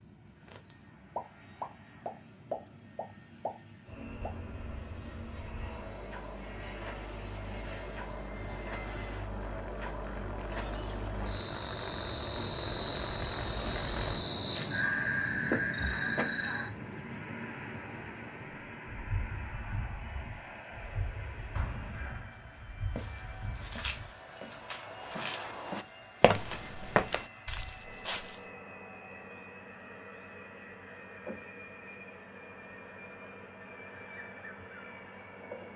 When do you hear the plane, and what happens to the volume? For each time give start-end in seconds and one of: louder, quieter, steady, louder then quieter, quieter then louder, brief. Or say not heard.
0.0-35.7 louder then quieter.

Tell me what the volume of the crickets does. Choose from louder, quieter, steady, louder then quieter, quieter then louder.
louder then quieter.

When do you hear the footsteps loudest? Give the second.
27 s.